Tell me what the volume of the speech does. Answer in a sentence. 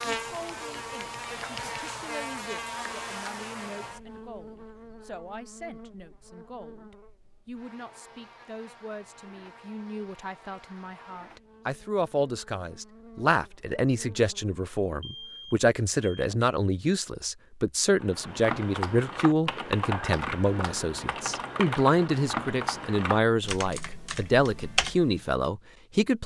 The volume of the speech goes up.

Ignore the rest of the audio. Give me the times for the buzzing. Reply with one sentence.
The buzzing can be heard from 0.0 to 15.4 s.